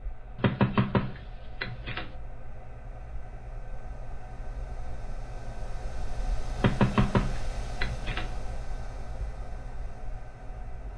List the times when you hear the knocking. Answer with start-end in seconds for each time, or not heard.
0.3-2.1, 6.5-8.3.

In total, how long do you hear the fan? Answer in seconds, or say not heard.
11 s.